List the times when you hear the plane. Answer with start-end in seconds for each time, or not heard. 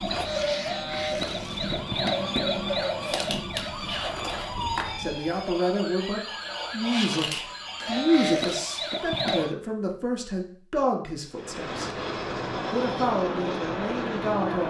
0.0-5.2, 11.3-14.6.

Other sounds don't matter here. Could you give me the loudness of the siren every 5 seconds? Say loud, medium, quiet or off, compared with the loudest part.
loud, loud, off.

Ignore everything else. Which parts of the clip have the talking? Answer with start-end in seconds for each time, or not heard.
5.0-11.9, 12.7-14.6.